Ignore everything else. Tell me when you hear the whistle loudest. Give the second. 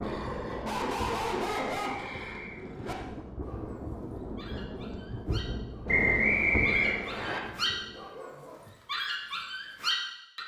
6 s.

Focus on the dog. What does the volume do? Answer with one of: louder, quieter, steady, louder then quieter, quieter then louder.
quieter then louder.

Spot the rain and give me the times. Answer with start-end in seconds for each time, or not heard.
0.0-8.1.